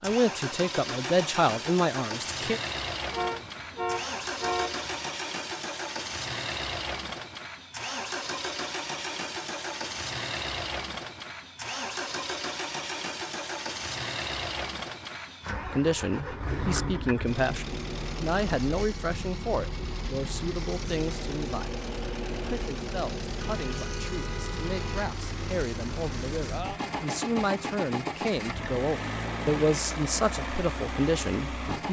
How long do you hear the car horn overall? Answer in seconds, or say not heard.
4 s.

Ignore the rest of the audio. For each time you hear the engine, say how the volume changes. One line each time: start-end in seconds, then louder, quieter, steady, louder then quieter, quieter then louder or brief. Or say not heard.
0.0-31.8 steady.